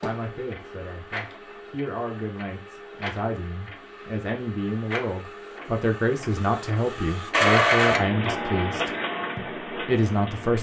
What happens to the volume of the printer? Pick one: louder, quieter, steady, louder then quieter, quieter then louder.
louder then quieter.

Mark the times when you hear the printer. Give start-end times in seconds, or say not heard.
0.0-10.5.